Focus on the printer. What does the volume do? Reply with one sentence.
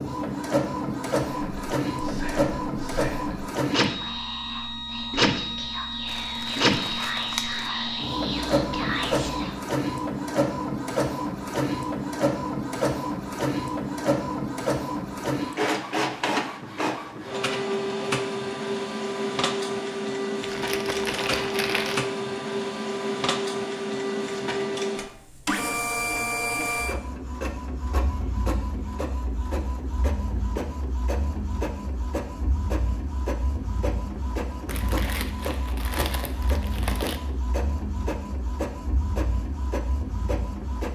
The volume of the printer goes down.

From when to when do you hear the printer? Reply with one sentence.
You can hear the printer from 0.0 to 40.8 s.